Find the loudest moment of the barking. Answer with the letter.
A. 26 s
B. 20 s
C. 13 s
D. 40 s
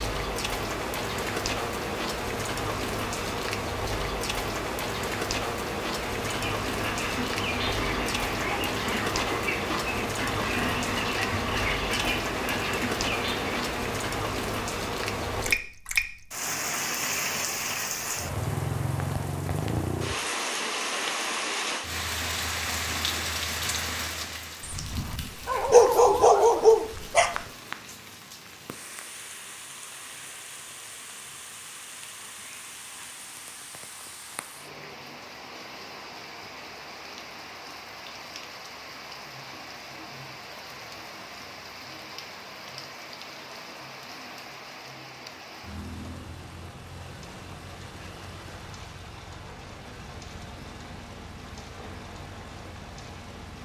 A.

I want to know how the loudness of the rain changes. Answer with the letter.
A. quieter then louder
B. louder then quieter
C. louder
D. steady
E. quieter
E.